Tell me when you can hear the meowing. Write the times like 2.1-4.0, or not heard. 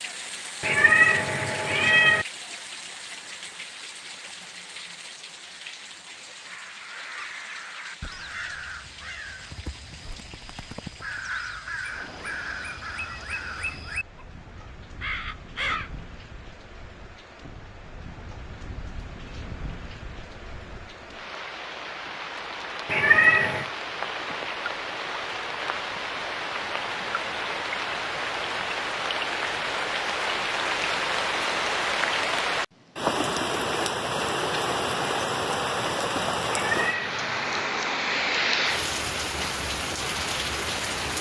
0.6-2.2, 22.9-23.7, 36.5-37.7.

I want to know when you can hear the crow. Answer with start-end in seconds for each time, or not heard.
6.5-15.9.